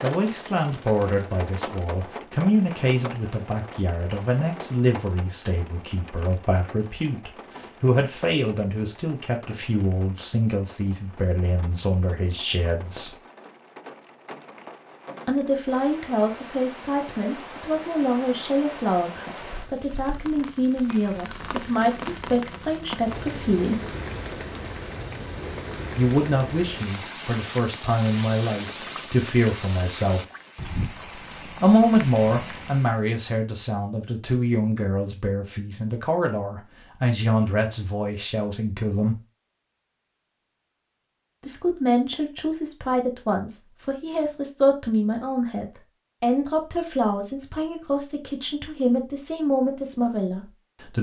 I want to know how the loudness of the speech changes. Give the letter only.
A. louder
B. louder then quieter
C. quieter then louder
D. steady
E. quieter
D.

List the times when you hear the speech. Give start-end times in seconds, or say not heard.
0.0-13.2, 15.2-23.9, 25.9-30.2, 31.6-39.2, 41.4-50.9.